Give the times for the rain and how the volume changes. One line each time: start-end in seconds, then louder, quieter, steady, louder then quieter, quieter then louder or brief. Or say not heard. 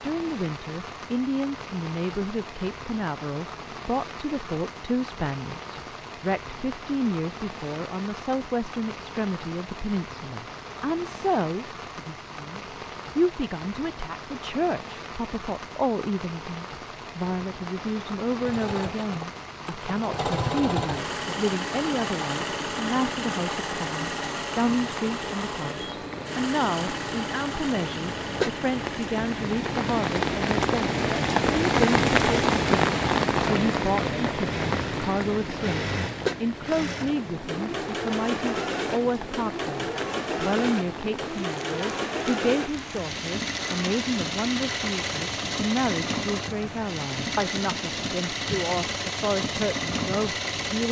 0.0-50.5 louder then quieter.